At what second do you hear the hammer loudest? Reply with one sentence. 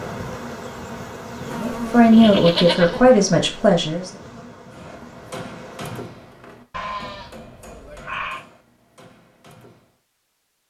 The volume of the hammer peaks at 6 seconds.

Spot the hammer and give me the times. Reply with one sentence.
You can hear the hammer from 4.7 to 10.0 s.